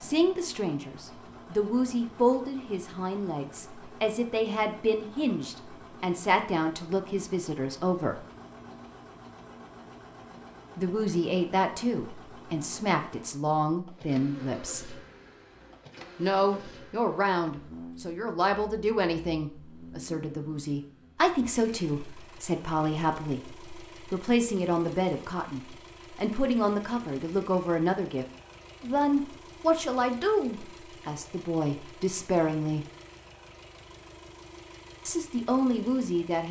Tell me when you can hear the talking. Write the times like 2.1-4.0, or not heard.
0.0-8.2, 10.8-15.0, 16.1-32.9, 35.0-36.4.